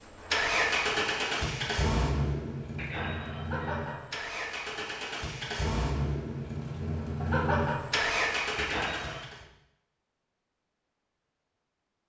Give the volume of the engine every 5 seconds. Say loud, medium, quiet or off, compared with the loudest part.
loud, loud, off.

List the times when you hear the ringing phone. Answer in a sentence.
You can hear the ringing phone from 2.8 to 4.1 s and from 8.6 to 9.2 s.